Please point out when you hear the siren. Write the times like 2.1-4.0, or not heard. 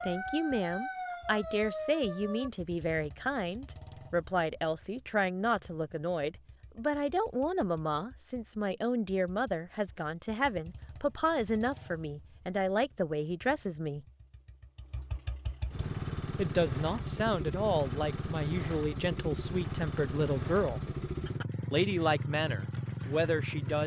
0.0-2.5.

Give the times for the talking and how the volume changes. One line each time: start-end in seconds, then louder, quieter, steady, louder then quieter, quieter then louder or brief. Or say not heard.
0.1-14.1 steady
16.4-20.8 steady
21.7-23.8 brief.